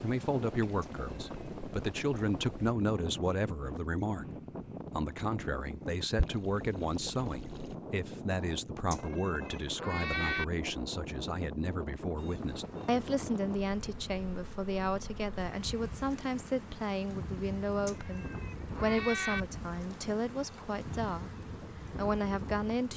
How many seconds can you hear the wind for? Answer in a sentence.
You can hear the wind for 23 seconds altogether.